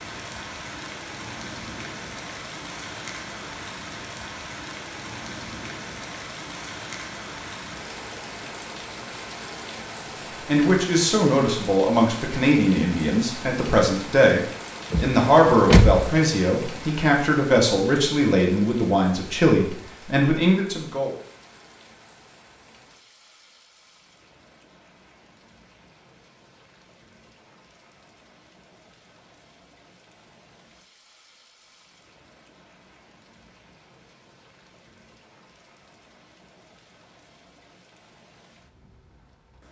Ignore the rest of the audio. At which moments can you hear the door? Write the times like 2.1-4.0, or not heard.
14.9-16.1.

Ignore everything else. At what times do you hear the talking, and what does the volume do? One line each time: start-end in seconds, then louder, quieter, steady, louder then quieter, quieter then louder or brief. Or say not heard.
10.4-21.1 steady.